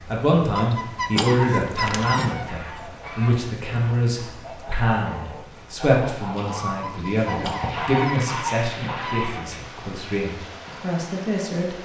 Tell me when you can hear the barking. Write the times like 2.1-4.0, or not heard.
0.6-2.4, 6.8-8.4.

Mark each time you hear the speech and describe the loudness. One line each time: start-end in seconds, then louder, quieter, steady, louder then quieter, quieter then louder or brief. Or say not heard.
0.0-11.7 quieter.